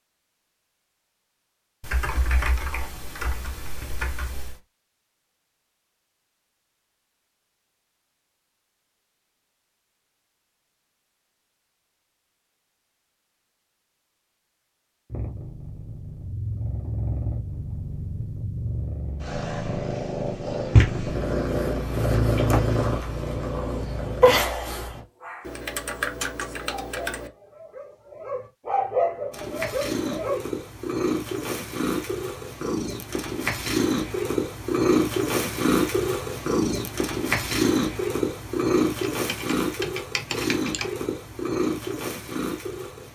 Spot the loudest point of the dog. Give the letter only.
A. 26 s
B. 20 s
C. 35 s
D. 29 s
D.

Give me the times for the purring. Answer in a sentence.
You can hear the purring from 15.1 to 25.0 s and from 29.3 to 43.1 s.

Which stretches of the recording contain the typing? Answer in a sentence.
The typing can be heard from 1.8 to 4.6 s, from 25.4 to 27.3 s and from 39.0 to 40.9 s.